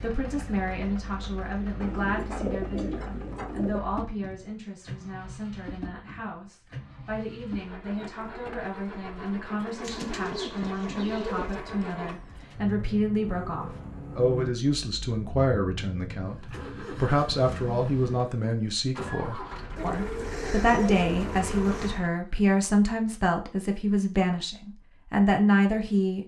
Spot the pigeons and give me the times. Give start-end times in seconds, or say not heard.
1.8-3.8, 9.8-11.6, 19.8-22.0.